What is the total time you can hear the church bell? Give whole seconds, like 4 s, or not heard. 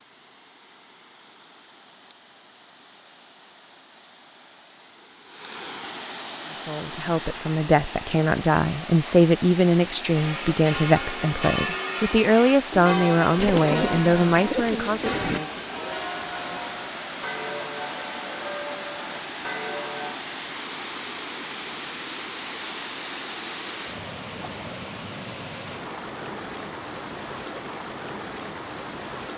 10 s.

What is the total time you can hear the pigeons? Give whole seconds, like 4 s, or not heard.
2 s.